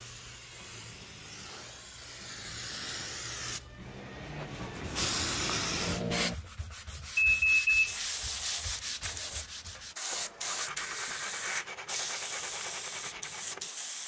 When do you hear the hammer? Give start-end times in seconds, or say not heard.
not heard.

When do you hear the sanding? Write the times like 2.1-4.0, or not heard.
4.7-13.7.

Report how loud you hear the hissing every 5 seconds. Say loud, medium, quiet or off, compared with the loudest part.
medium, loud, loud.